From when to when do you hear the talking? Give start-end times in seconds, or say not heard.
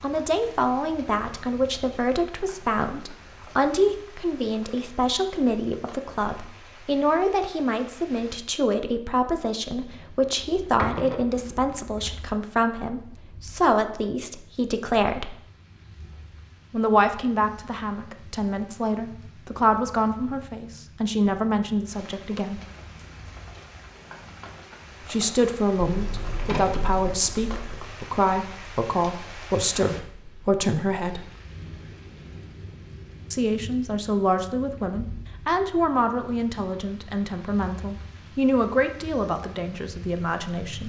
0.0-15.3, 16.7-22.6, 25.1-31.2, 33.3-40.8.